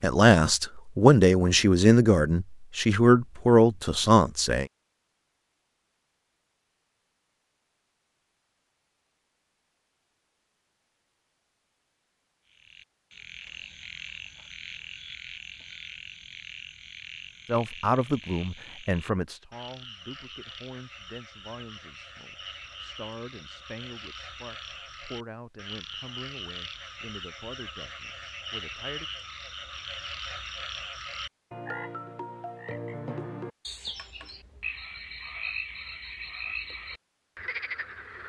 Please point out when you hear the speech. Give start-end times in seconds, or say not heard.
0.0-4.7, 17.4-29.1.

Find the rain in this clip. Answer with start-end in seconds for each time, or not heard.
not heard.